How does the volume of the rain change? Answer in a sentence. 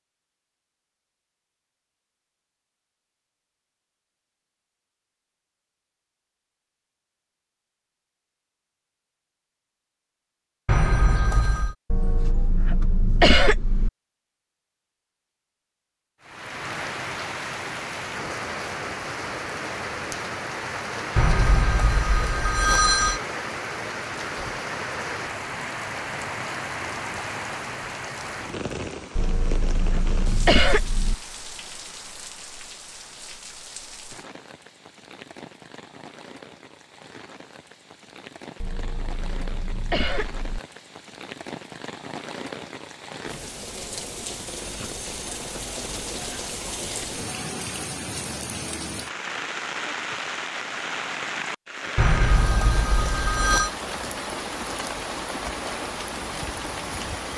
The volume of the rain goes down, then up.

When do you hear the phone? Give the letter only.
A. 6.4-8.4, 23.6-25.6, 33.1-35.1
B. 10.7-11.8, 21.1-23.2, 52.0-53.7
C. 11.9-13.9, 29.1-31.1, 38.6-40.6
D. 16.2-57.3
B.